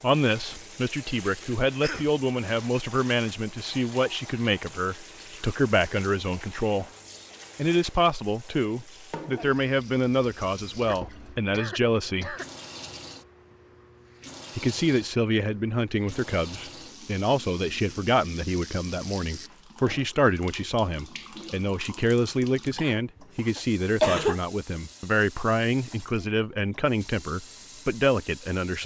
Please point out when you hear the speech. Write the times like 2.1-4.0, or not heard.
0.0-6.8, 7.5-12.3, 14.6-28.8.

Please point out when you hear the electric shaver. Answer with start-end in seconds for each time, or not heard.
not heard.